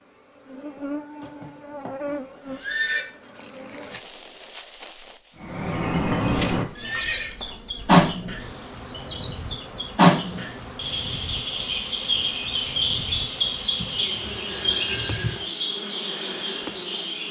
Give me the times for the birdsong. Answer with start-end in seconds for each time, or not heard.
5.3-17.2.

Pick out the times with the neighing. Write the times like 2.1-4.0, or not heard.
1.2-3.0, 6.8-7.3, 13.8-15.4.